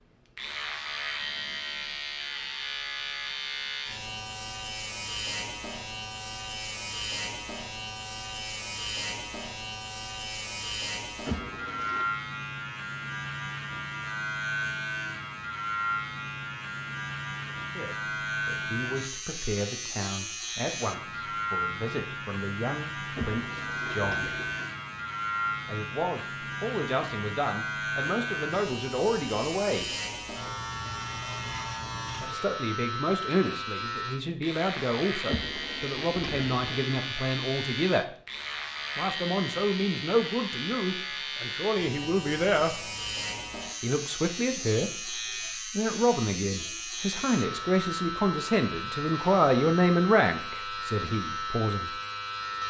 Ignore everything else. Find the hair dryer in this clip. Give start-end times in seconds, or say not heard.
not heard.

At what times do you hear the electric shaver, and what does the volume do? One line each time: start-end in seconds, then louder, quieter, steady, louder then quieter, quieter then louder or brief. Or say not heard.
0.3-52.6 steady.